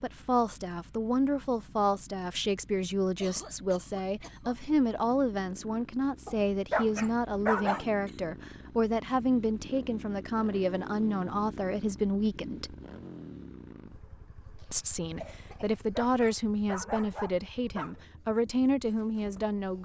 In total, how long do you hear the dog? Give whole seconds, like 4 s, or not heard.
4 s.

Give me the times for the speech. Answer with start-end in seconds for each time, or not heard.
0.0-12.8, 14.7-19.8.